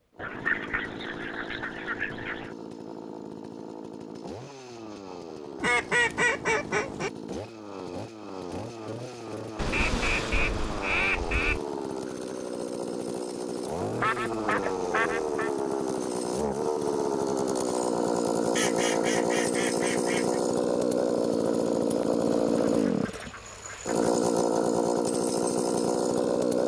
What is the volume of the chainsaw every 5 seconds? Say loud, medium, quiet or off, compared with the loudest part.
quiet, quiet, medium, loud, loud, loud.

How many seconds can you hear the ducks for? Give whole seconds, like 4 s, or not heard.
11 s.